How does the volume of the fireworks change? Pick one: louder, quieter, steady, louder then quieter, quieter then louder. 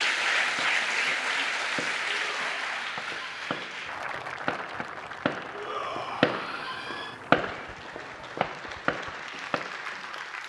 louder then quieter.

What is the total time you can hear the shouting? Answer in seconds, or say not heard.
3 s.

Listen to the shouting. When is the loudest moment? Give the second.
6 s.